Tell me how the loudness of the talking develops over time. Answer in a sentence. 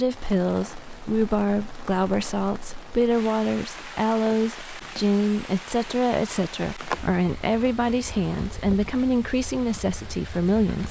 The volume of the talking stays about the same.